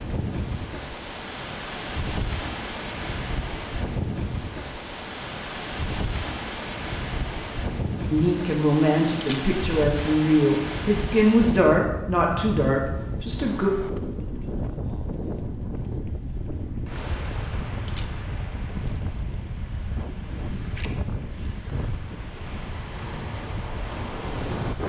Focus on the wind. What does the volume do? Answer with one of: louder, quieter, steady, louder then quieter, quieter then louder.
steady.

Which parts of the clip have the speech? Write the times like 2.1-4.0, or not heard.
8.1-13.7.